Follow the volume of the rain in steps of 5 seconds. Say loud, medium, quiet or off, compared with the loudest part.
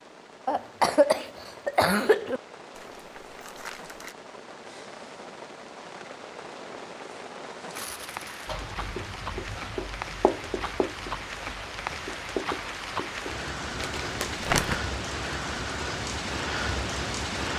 quiet, medium, loud, loud.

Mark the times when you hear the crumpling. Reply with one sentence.
You can hear the crumpling from 2.8 to 4.2 s, from 7.7 to 8.5 s and from 13.8 to 14.8 s.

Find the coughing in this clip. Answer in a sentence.
The coughing can be heard from 0.5 to 2.4 s.